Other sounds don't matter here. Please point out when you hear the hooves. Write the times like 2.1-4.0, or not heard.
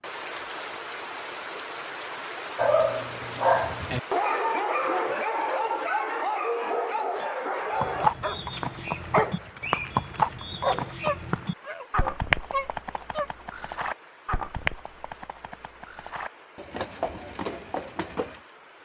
7.8-18.4.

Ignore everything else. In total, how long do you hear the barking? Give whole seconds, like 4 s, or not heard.
11 s.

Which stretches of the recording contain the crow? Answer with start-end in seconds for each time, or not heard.
not heard.